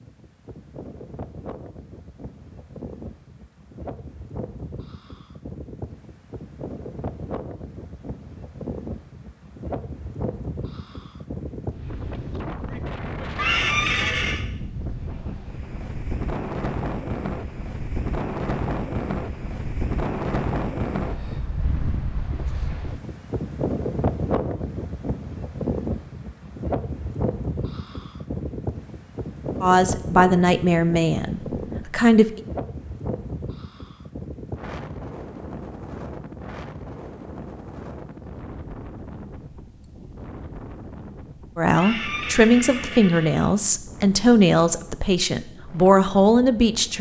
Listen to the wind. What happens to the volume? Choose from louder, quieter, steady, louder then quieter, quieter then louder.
louder then quieter.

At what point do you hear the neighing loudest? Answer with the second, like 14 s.
14 s.